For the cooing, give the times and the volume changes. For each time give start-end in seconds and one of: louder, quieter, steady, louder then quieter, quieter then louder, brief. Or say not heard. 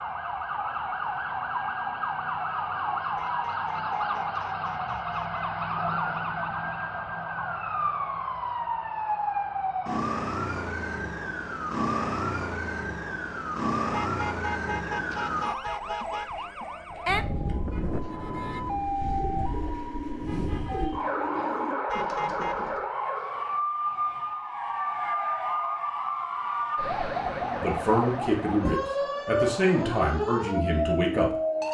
15.9-22.8 louder.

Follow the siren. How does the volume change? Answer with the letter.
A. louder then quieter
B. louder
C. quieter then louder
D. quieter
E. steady
E.